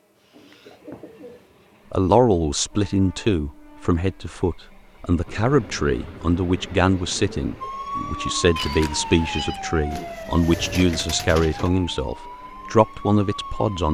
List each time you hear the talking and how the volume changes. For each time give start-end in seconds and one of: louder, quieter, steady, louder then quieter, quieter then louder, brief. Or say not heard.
1.9-13.8 steady.